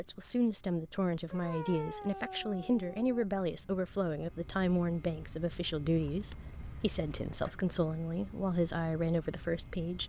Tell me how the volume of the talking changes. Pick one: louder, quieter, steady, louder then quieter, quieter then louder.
steady.